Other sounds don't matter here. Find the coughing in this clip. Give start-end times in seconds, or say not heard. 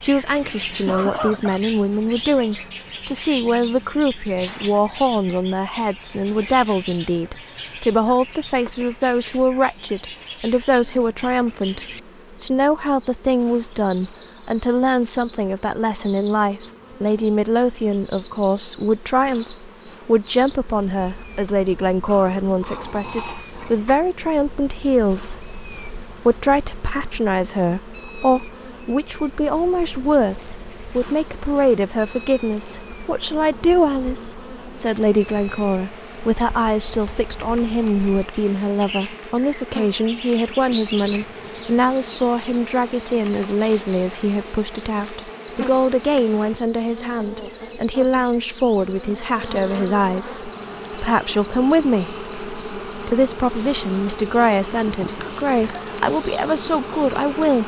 0.2-1.6.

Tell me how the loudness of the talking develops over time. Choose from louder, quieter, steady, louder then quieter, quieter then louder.
steady.